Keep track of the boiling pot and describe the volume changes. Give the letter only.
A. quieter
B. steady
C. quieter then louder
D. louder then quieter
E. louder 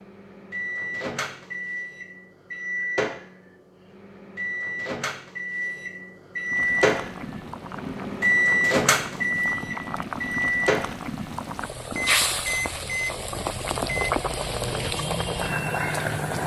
E.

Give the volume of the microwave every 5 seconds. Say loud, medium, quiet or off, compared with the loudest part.
medium, loud, loud, medium.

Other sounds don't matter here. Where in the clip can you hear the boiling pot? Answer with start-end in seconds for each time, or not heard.
6.5-16.4.